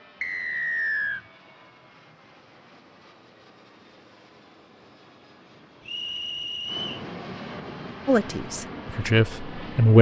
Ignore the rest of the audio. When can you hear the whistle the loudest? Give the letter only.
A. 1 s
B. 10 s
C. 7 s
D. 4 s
A.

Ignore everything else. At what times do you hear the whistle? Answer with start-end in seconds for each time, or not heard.
0.2-1.2, 5.8-7.0.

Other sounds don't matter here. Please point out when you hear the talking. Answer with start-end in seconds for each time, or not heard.
8.1-9.9.